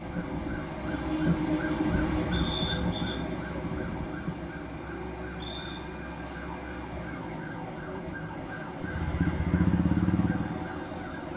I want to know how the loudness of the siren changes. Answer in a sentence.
The loudness of the siren goes down.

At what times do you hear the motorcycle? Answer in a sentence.
You can hear the motorcycle from 8.8 to 11.2 s.